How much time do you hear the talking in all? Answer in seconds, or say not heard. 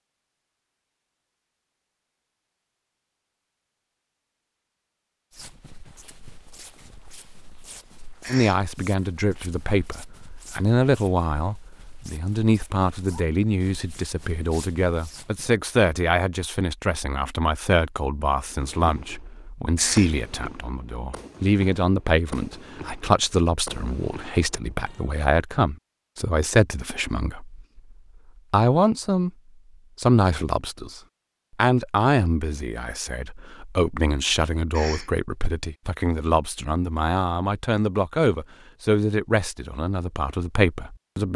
32 s.